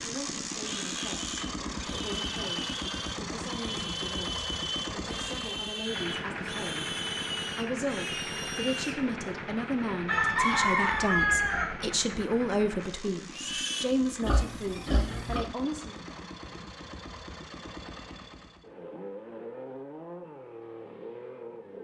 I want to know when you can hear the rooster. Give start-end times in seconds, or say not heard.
10.1-11.7.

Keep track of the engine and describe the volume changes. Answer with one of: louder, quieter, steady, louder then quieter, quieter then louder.
quieter.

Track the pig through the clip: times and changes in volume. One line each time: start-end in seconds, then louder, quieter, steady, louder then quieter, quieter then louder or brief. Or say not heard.
0.6-9.0 steady
13.3-15.5 brief.